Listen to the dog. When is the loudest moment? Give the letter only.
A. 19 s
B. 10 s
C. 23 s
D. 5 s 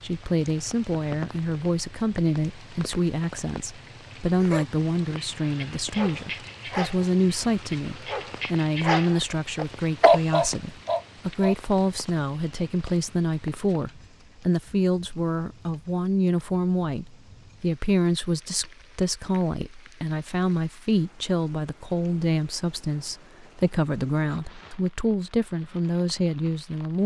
B.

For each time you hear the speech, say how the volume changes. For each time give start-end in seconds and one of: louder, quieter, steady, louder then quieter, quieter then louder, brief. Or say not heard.
0.0-27.0 steady.